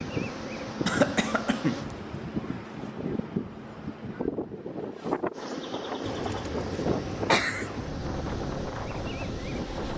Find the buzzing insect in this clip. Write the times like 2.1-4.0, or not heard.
0.0-1.9, 5.3-9.9.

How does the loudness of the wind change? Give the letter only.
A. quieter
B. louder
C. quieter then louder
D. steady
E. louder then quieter
D.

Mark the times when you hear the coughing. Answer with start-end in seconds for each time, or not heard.
0.8-1.9, 6.0-7.9.